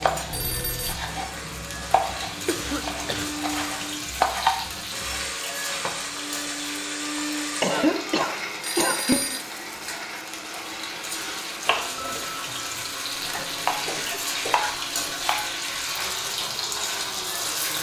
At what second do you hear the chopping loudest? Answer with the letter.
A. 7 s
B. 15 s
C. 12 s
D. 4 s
D.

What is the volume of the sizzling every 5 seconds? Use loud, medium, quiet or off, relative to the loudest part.
medium, medium, loud, loud.